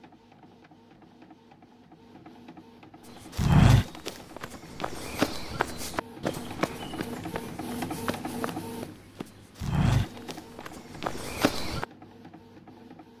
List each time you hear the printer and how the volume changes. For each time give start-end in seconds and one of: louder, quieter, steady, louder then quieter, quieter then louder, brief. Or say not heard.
0.0-13.1 louder then quieter.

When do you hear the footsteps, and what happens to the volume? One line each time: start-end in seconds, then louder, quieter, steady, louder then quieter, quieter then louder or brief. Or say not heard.
3.4-11.8 quieter then louder.